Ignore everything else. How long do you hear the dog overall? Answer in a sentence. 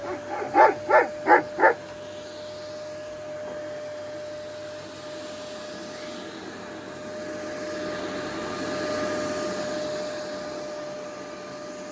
The dog can be heard for 2 seconds in total.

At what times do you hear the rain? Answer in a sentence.
You can't hear the rain here.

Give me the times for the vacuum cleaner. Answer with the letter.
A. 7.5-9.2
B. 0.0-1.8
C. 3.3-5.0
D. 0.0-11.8
D.